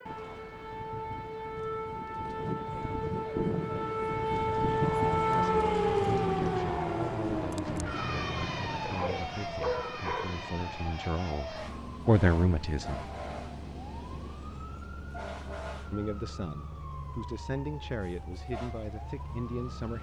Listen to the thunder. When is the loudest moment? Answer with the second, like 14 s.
8 s.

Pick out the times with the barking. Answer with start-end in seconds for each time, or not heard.
8.8-10.4.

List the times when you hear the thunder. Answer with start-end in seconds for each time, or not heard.
7.7-9.7.